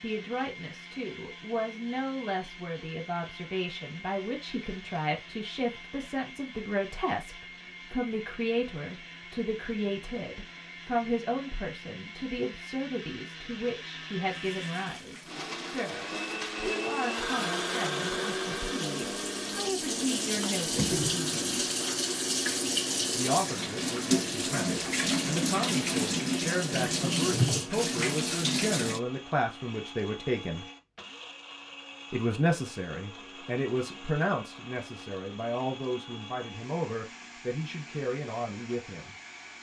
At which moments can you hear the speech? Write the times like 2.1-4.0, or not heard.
0.0-21.6, 23.1-30.6, 32.1-39.1.